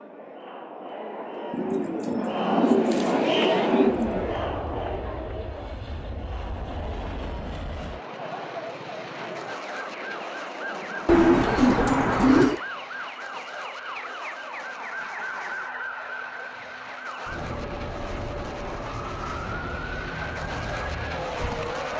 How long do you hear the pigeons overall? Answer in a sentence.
You can hear the pigeons for 4 seconds altogether.